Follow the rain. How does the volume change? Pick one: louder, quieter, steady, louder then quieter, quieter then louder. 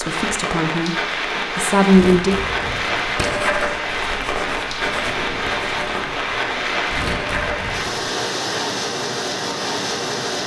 steady.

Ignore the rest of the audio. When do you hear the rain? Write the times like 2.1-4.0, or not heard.
0.0-10.4.